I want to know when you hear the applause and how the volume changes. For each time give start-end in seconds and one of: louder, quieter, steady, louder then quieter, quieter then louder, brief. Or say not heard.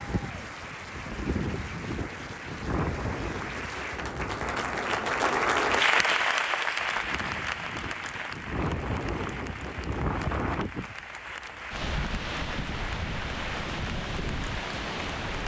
0.0-15.4 louder then quieter.